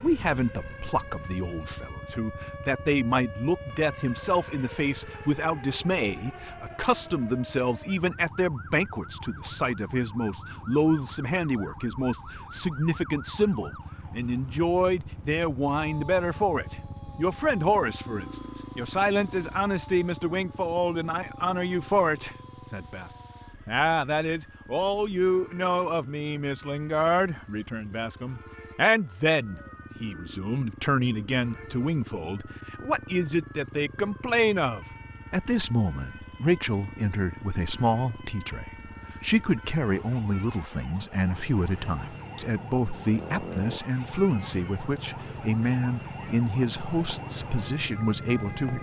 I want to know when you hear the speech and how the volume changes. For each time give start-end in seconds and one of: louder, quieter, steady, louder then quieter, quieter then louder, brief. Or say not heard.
0.0-48.7 steady.